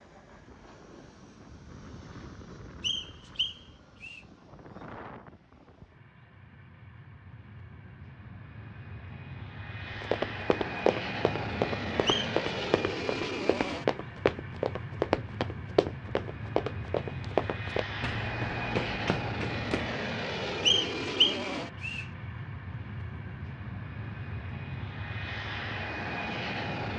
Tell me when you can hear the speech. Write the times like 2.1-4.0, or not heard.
not heard.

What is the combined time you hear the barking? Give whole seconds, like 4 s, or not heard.
not heard.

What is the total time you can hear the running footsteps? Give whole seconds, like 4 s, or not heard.
10 s.